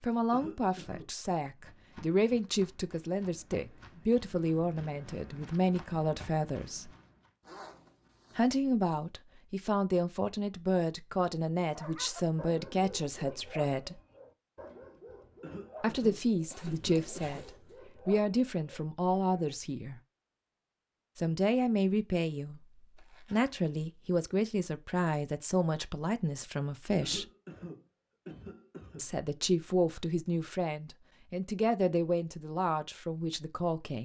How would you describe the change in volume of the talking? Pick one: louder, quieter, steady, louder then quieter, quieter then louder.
steady.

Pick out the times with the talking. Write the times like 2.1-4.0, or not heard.
0.0-6.9, 8.3-14.0, 15.8-20.0, 21.1-27.2, 28.9-34.0.